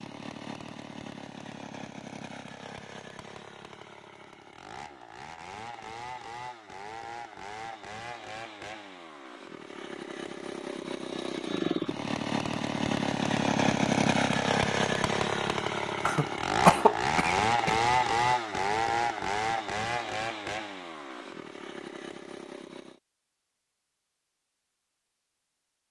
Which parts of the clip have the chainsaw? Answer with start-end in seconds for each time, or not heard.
0.0-23.0.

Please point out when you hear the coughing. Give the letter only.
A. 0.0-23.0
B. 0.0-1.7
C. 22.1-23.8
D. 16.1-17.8
D.